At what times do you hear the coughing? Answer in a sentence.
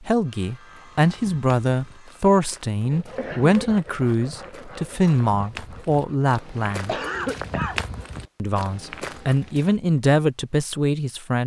You can hear the coughing from 3.0 to 3.9 s and from 6.7 to 8.2 s.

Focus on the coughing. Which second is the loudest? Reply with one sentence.
The volume of the coughing peaks at 7 seconds.